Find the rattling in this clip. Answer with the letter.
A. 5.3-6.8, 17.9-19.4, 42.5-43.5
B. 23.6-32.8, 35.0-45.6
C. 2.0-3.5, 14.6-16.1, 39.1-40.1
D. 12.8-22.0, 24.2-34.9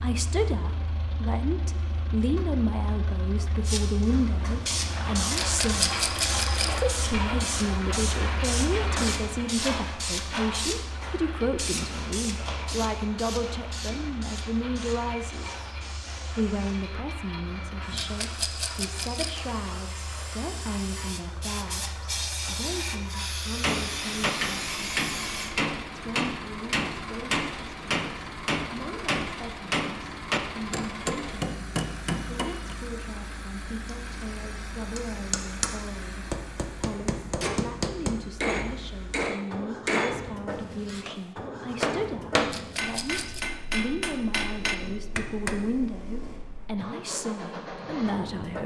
A.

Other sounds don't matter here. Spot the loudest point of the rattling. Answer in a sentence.
The loudest moment of the rattling is at 6 seconds.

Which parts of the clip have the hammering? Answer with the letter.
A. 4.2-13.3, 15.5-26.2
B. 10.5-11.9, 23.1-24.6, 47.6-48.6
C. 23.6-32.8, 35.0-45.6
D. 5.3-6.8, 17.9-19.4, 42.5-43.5
C.